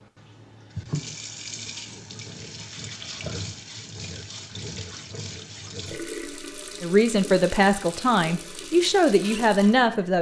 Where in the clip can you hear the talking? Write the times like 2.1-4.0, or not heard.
6.8-10.1.